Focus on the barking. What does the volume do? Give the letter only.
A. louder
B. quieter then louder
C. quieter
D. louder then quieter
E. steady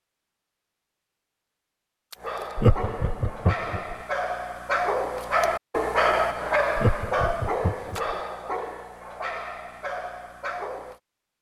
D.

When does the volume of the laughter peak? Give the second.
3 s.